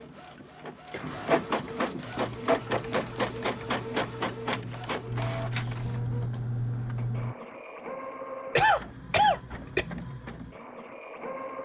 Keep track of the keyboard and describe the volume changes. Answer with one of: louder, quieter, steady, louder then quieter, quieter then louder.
louder.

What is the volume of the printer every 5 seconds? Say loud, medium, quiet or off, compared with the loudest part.
loud, medium, medium.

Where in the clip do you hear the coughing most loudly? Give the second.
9 s.